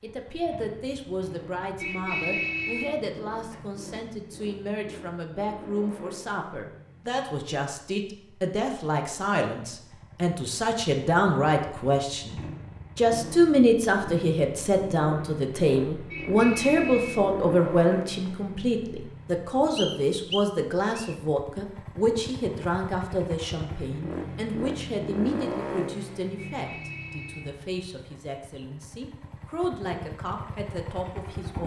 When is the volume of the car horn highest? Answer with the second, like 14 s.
2 s.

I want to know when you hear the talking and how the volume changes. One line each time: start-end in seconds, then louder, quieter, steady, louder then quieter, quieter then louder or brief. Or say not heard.
0.0-31.6 louder then quieter.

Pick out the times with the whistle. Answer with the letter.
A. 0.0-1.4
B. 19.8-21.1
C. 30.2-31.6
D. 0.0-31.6
B.